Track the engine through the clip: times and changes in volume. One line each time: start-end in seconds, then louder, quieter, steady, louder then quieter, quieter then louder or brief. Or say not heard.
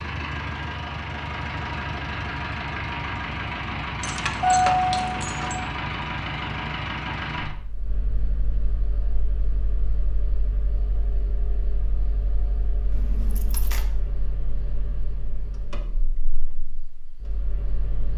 0.0-18.1 quieter.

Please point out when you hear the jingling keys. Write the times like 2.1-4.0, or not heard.
4.0-5.6, 12.9-13.8.